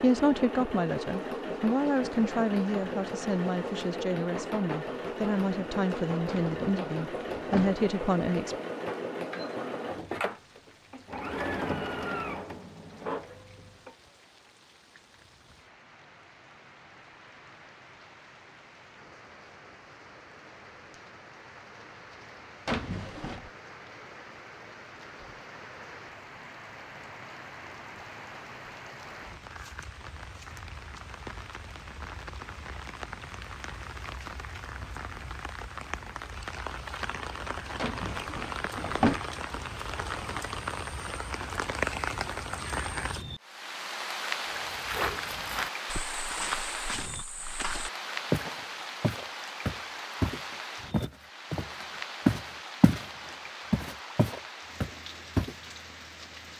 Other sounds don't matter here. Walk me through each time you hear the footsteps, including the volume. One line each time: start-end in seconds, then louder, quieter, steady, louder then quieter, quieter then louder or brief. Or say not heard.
44.5-53.0 louder
53.7-55.5 brief.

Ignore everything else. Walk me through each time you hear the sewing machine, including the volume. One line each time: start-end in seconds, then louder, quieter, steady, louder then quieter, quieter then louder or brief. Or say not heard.
0.0-13.9 steady.